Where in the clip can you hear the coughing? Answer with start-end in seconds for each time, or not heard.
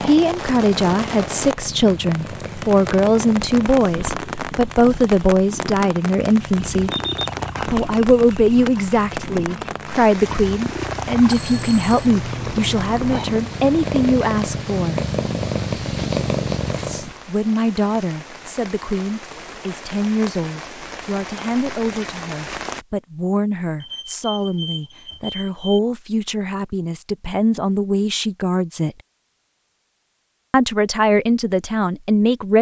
not heard.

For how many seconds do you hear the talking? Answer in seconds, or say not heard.
28 s.